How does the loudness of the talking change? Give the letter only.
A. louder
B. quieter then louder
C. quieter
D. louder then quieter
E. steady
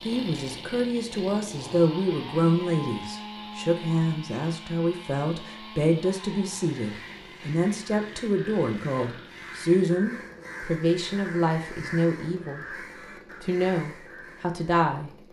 E.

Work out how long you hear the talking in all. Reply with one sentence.
You can hear the talking for 15 seconds altogether.